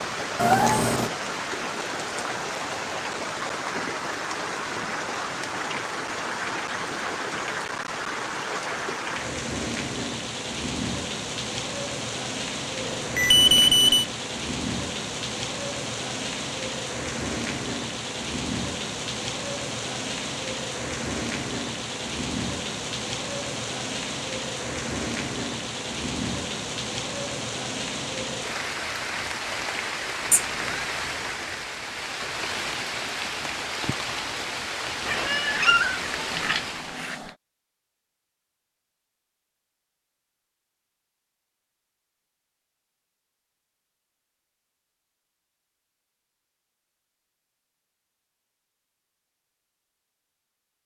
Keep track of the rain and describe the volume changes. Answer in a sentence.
The loudness of the rain stays about the same.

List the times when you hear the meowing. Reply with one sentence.
The meowing can be heard from 0.3 to 1.1 s, from 30.3 to 30.9 s and from 35.0 to 37.3 s.